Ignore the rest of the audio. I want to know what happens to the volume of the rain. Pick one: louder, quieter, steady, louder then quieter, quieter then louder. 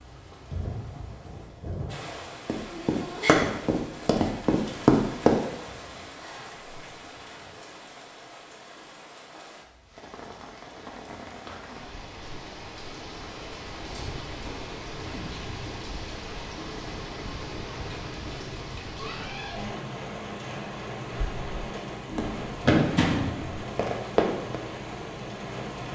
quieter then louder.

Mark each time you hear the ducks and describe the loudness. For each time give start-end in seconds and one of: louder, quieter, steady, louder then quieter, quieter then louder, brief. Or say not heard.
not heard.